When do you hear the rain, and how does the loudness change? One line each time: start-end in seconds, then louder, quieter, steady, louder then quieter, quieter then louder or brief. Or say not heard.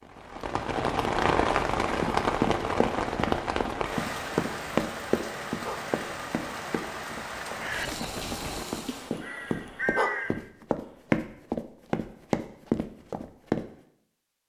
0.0-9.2 quieter.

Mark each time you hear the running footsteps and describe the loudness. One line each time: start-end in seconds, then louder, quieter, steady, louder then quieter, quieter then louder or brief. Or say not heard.
2.0-13.7 quieter then louder.